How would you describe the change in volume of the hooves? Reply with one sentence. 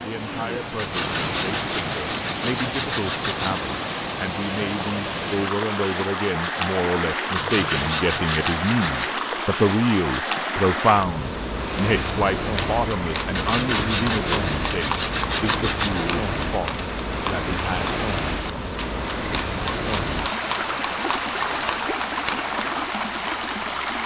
The loudness of the hooves stays about the same.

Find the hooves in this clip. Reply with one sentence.
You can hear the hooves from 11.6 to 22.9 s.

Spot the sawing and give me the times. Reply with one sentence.
You can hear the sawing from 0.8 to 3.6 s, from 7.3 to 9.1 s, from 13.3 to 16.1 s and from 19.9 to 21.8 s.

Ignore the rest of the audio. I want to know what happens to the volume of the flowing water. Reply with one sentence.
The volume of the flowing water stays about the same.